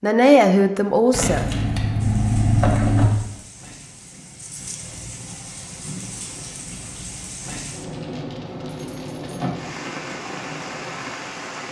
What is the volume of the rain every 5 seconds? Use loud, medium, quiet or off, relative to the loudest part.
medium, loud, loud.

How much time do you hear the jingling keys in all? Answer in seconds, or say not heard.
3 s.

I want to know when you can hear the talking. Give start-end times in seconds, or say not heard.
0.0-1.5.